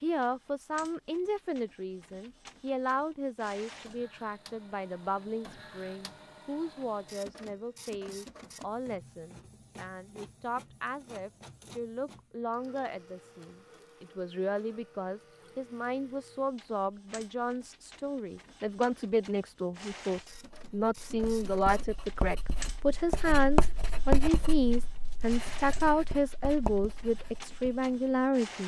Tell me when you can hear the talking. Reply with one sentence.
You can hear the talking from 0.0 to 28.6 s.